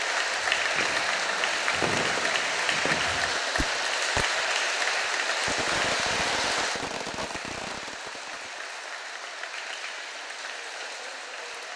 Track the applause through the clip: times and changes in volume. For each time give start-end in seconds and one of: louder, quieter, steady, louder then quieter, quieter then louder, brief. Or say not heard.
0.0-11.7 quieter.